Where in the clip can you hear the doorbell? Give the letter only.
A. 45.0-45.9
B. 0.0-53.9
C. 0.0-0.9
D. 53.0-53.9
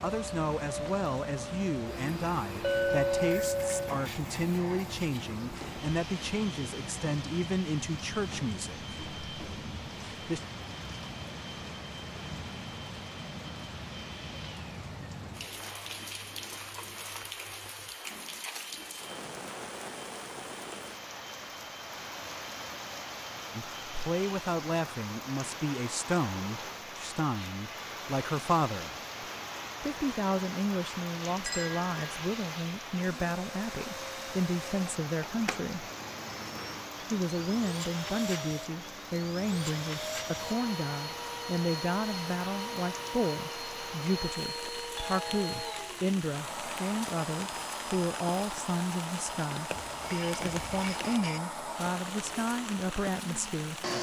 A.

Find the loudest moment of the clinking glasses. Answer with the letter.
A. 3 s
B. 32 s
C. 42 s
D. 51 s
A.